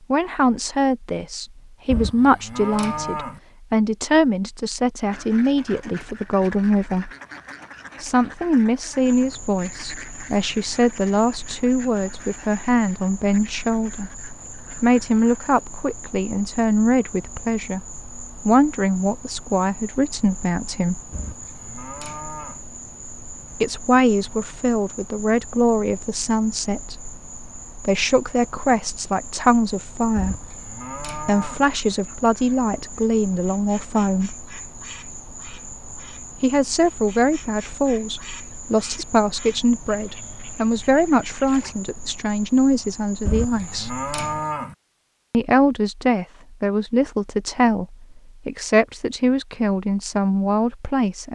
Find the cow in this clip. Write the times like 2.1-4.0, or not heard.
1.9-3.4, 21.1-22.6, 30.1-31.6, 43.2-44.8.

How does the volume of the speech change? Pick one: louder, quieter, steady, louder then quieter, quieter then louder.
steady.